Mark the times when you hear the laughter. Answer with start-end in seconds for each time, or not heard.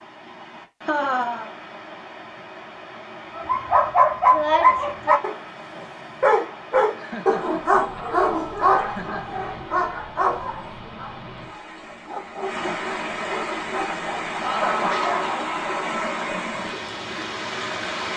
0.8-1.5, 7.0-9.3, 14.4-16.0.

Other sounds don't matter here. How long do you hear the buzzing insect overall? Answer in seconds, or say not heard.
not heard.